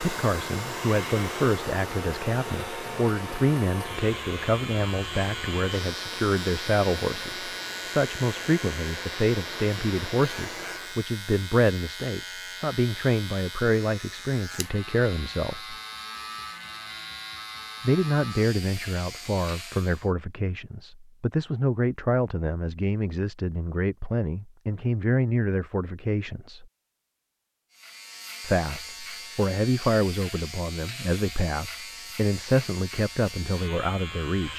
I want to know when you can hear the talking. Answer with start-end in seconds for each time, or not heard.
0.0-15.8, 17.8-26.6, 28.4-34.5.